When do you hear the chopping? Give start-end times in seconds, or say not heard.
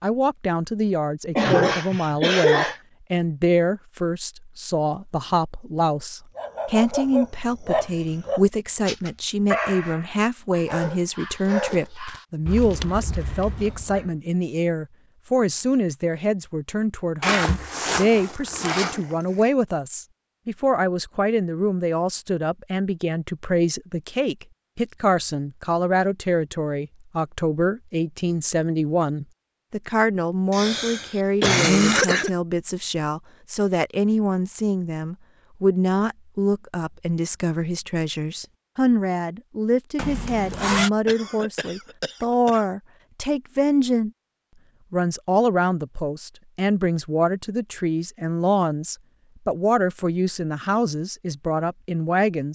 not heard.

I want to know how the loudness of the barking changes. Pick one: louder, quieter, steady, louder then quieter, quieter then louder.
quieter.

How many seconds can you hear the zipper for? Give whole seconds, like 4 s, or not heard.
3 s.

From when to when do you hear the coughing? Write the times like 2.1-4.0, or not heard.
1.4-2.8, 30.5-32.3, 41.0-42.6.